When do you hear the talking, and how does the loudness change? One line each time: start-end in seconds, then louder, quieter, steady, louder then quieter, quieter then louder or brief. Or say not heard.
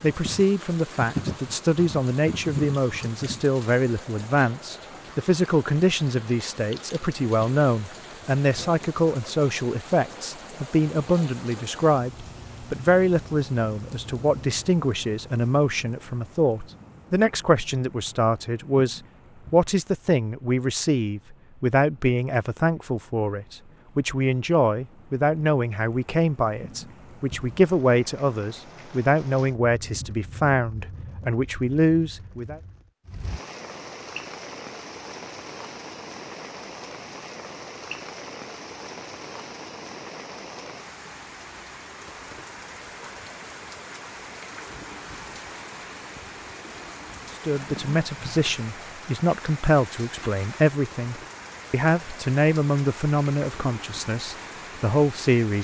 0.0-32.6 steady
47.5-55.5 steady.